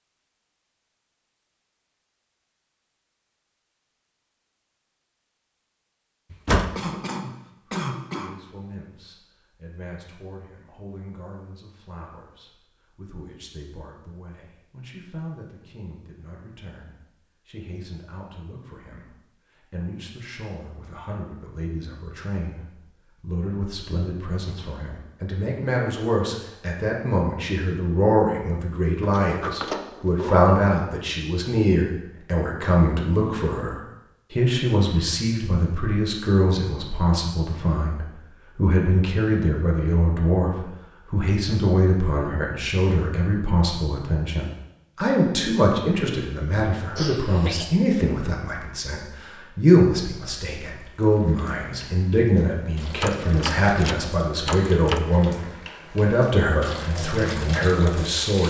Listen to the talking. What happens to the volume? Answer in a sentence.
The volume of the talking goes up.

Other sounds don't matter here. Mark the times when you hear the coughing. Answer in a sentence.
You can hear the coughing from 6.8 to 8.3 s and from 47.0 to 47.8 s.